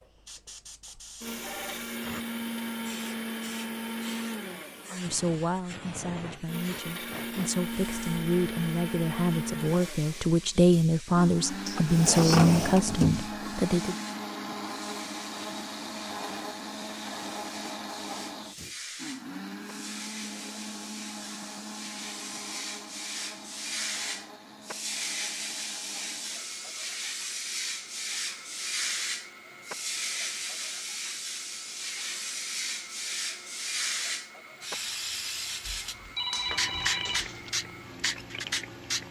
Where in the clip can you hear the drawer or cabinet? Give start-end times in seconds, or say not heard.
11.7-13.6.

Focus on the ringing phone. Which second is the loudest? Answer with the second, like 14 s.
36 s.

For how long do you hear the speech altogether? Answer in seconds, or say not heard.
9 s.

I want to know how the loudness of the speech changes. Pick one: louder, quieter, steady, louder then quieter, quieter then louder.
louder.